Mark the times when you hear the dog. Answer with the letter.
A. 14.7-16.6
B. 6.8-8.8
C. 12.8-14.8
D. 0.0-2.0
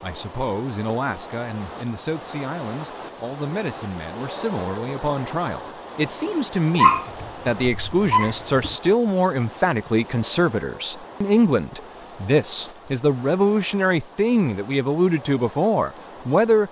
B.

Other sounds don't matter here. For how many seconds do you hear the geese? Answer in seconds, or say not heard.
not heard.